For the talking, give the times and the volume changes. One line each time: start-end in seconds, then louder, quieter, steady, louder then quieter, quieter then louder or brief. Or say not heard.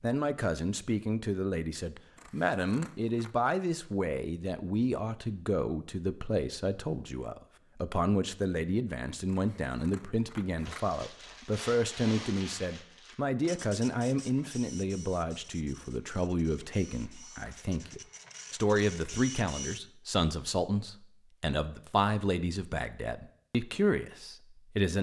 0.0-24.9 steady.